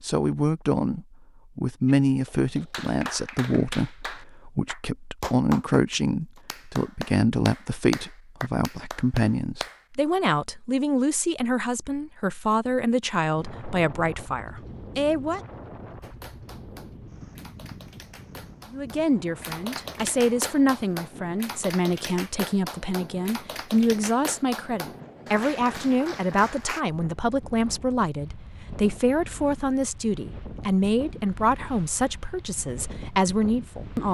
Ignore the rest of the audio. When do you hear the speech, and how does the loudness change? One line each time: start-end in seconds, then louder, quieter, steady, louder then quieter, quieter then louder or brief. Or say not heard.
0.0-15.4 steady
18.7-34.0 steady.